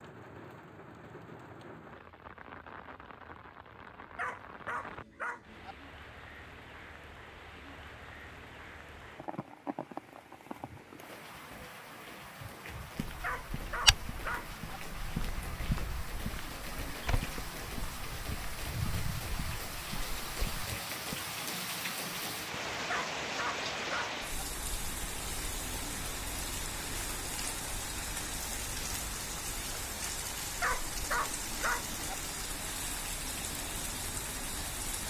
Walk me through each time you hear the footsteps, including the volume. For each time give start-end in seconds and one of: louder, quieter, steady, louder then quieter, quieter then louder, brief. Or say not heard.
12.9-21.1 quieter.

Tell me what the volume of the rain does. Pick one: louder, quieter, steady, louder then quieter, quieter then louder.
louder.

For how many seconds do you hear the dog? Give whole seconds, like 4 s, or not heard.
6 s.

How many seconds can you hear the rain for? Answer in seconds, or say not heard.
35 s.